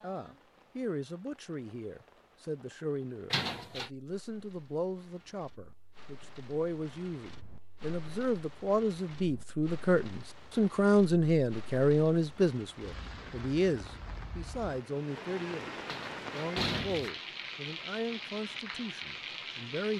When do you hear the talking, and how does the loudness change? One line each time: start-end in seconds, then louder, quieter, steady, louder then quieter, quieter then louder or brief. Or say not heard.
0.0-19.9 louder then quieter.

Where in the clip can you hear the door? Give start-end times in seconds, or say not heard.
3.3-3.9, 15.8-17.1.